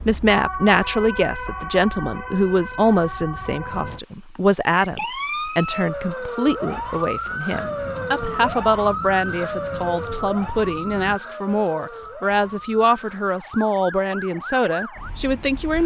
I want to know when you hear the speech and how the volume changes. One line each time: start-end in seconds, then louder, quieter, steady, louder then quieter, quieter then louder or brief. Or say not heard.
0.1-15.8 steady.